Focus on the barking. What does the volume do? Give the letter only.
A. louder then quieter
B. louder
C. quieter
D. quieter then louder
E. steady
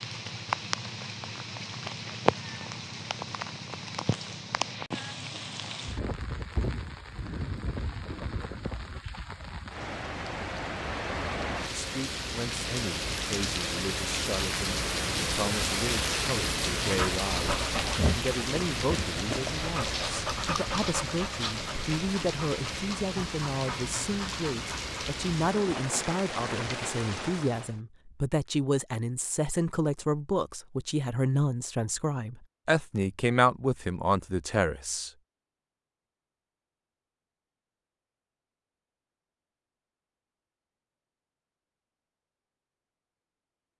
C.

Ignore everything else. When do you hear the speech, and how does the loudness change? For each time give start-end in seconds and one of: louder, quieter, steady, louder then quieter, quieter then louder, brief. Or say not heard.
11.7-35.1 louder.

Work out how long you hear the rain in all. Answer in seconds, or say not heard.
28 s.